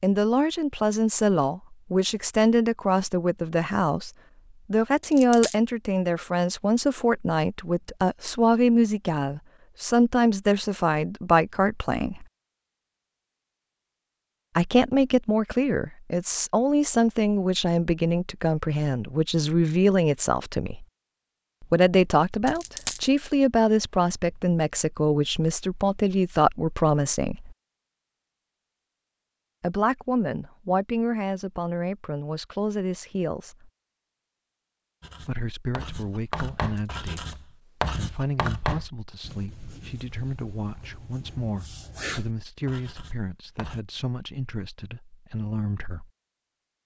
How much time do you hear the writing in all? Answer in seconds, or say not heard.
9 s.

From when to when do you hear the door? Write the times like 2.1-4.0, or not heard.
not heard.